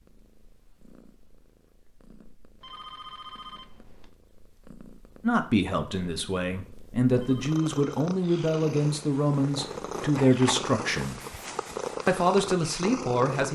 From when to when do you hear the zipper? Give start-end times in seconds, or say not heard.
not heard.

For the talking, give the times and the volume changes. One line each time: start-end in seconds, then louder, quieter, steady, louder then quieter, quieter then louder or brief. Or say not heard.
5.2-11.2 louder
12.1-13.5 brief.